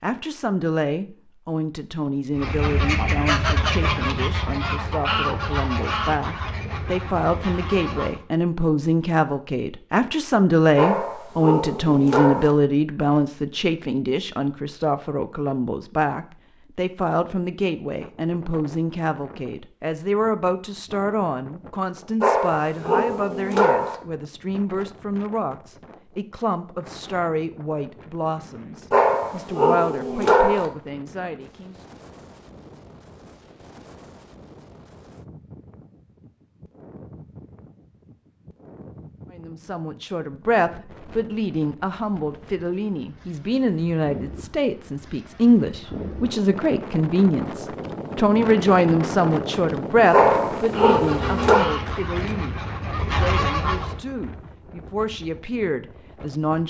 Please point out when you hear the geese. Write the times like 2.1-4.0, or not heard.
2.4-8.2, 50.7-54.1.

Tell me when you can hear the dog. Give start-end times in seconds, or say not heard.
10.8-12.6, 22.2-23.9, 28.9-30.6, 50.1-51.6.